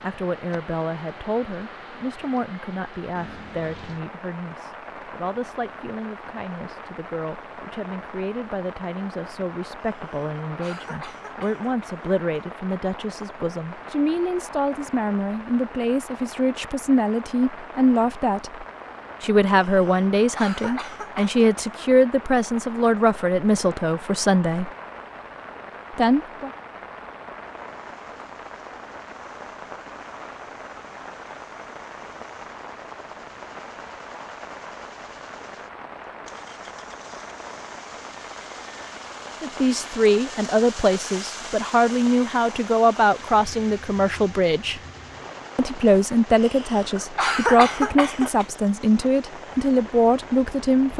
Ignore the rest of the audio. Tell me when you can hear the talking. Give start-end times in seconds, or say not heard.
0.0-24.7, 25.9-26.5, 39.4-44.8, 45.5-50.9.